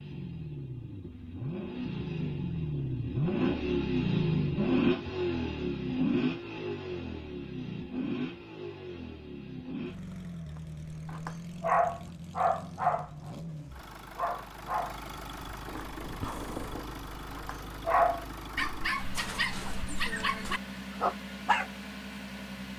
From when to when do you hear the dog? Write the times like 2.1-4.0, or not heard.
11.1-13.3, 14.2-21.7.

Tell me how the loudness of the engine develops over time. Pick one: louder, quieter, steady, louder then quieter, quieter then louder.
quieter.